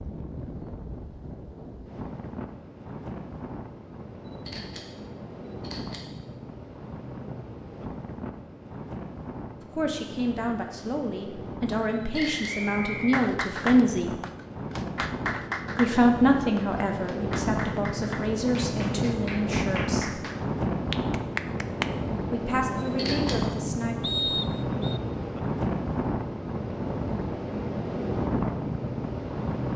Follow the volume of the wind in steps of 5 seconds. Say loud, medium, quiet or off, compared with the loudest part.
medium, medium, medium, loud, loud, loud.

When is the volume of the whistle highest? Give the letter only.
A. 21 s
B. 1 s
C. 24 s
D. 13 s
C.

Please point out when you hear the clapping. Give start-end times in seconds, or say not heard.
13.0-21.9.